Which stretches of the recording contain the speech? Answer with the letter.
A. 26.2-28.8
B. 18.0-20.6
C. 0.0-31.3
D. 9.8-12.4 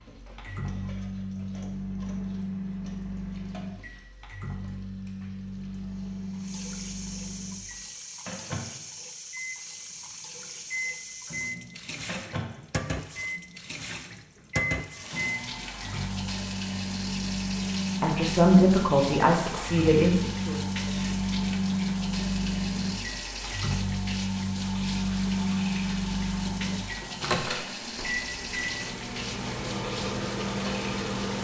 B.